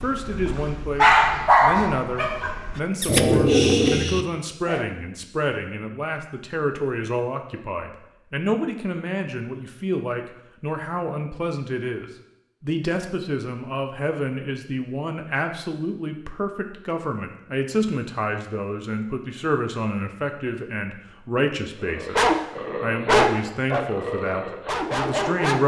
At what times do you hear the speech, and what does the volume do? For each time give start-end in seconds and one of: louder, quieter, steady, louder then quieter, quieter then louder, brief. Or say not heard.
0.0-22.1 steady
22.8-25.6 brief.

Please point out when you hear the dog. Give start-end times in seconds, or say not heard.
0.0-4.8, 21.8-25.6.